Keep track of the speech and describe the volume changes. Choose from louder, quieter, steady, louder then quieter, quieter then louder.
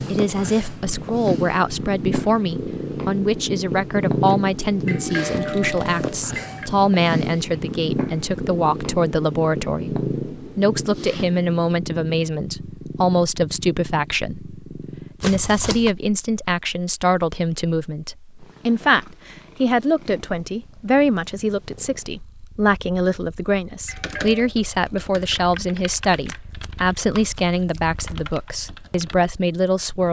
steady.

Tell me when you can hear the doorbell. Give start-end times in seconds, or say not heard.
4.8-6.7, 23.9-24.5.